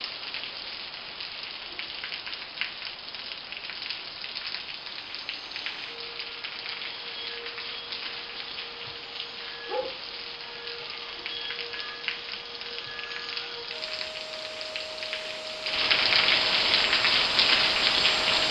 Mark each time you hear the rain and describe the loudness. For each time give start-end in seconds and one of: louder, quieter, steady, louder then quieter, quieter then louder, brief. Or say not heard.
0.0-18.4 louder.